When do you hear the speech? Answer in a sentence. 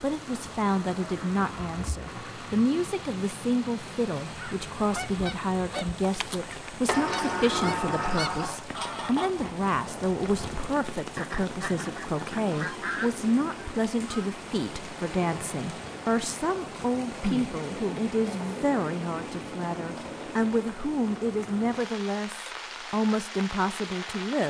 The speech can be heard from 0.0 to 24.4 s.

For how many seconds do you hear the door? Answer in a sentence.
You can hear the door for 2 seconds altogether.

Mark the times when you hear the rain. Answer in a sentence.
You can hear the rain from 0.0 to 24.4 s.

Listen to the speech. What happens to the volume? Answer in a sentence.
The loudness of the speech stays about the same.